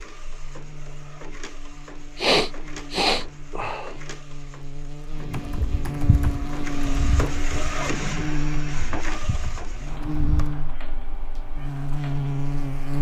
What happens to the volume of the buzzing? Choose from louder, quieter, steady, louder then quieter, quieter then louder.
louder.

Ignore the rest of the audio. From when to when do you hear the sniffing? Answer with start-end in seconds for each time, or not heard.
2.1-4.0.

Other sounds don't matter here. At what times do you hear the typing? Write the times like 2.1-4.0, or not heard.
5.2-10.6.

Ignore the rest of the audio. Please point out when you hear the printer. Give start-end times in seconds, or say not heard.
0.0-12.9.